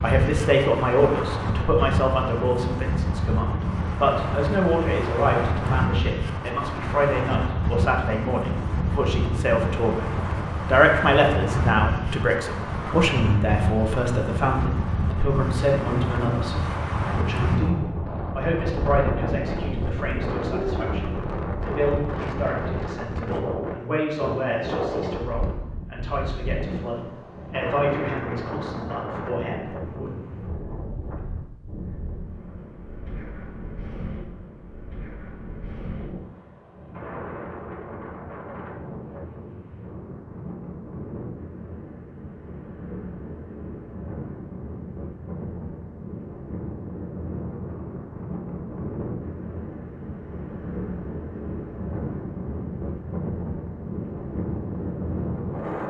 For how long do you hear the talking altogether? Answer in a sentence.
You can hear the talking for 30 seconds altogether.